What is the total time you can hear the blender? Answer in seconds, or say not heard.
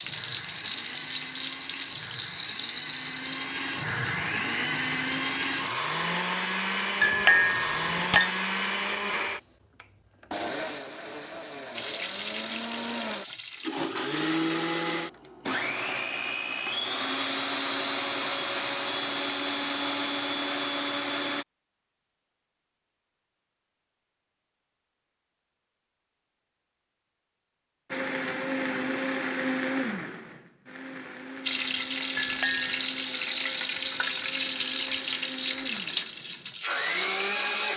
31 s.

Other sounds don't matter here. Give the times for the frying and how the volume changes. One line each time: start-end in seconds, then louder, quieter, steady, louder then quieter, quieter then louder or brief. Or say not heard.
0.0-5.7 quieter
11.8-13.7 brief
31.4-37.7 quieter.